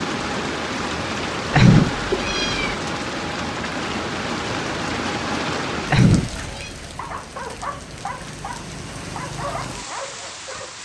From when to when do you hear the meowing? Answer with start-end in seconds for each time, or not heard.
1.5-2.8, 5.9-6.7.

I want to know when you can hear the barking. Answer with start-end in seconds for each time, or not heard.
7.0-10.7.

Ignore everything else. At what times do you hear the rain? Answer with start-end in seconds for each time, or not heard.
0.0-10.8.